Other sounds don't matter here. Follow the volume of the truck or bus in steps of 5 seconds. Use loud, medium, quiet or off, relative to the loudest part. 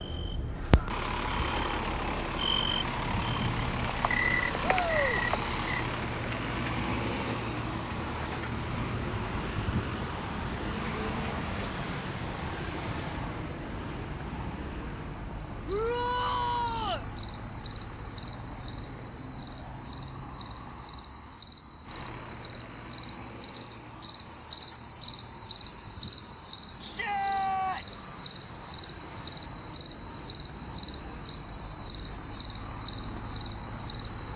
loud, loud, loud, medium, quiet, quiet, medium.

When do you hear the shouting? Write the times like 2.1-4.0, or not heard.
4.6-5.2, 15.7-17.1, 26.8-28.1.